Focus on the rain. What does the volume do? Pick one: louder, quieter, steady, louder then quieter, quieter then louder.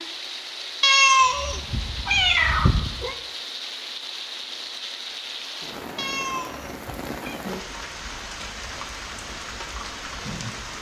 steady.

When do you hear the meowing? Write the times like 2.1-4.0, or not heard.
0.8-3.1, 6.0-7.4.